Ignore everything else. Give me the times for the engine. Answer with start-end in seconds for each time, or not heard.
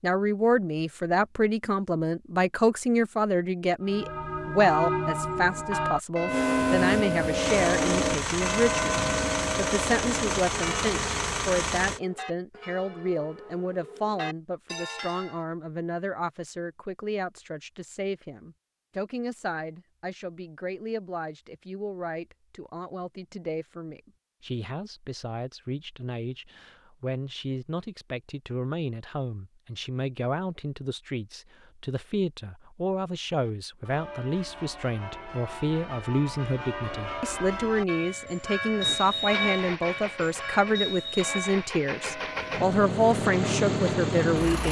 6.2-12.0, 38.8-44.6.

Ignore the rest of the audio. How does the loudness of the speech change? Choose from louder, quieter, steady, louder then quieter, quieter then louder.
quieter then louder.